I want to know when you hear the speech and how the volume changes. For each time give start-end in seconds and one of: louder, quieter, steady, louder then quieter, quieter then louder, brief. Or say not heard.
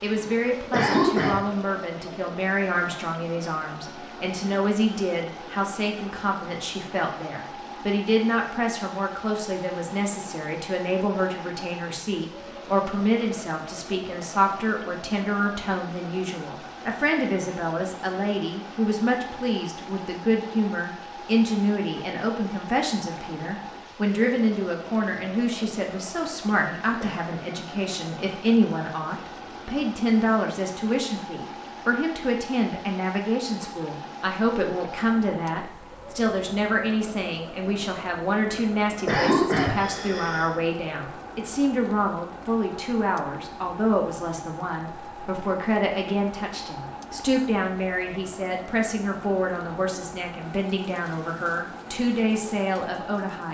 0.0-53.4 steady.